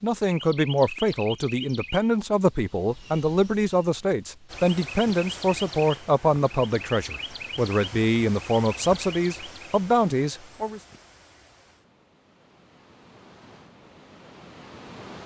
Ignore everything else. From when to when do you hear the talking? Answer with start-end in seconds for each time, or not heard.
0.0-10.8.